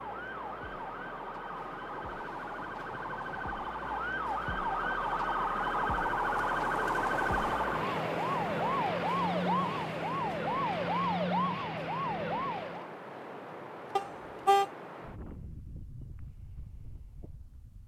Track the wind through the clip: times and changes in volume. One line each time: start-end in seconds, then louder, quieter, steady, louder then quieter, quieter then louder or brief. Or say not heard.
0.0-17.8 louder then quieter.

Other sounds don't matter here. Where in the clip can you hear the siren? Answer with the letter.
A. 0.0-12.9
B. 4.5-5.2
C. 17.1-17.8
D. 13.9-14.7
A.